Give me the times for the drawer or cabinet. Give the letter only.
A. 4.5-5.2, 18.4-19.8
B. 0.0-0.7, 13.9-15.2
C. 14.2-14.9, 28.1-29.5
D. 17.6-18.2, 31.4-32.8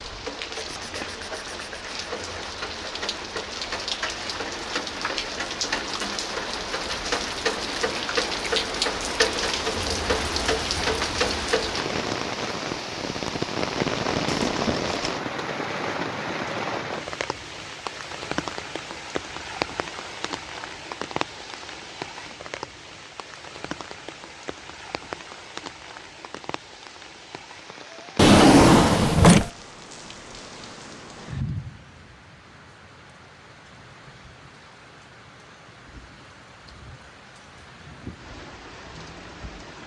C.